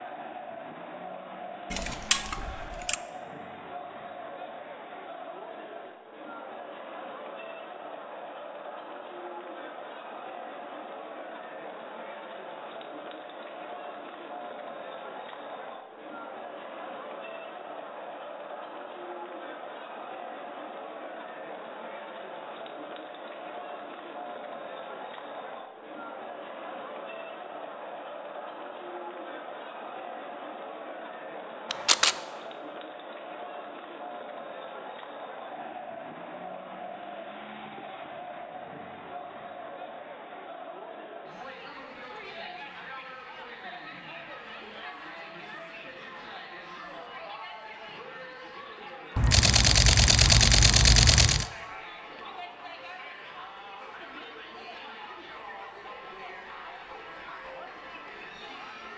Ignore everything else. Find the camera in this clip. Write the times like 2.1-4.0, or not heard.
1.7-3.0, 31.7-32.2, 49.1-51.5.